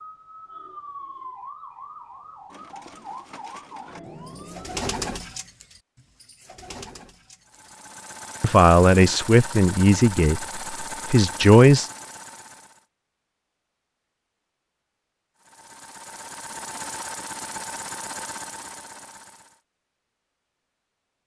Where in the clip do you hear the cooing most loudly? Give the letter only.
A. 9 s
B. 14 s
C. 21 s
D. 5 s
D.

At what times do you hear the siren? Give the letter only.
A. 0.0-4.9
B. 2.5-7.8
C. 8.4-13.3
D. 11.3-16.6
A.